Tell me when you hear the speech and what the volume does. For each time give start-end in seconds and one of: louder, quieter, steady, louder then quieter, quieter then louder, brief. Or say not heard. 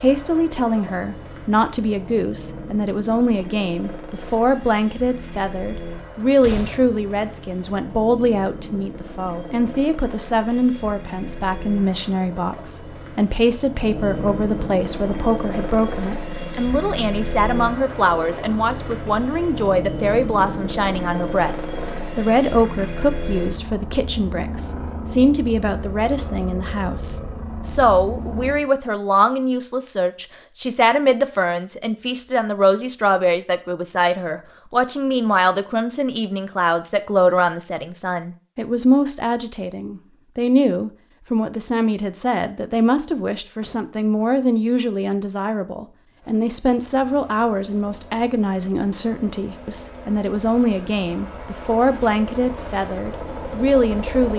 0.0-54.3 steady.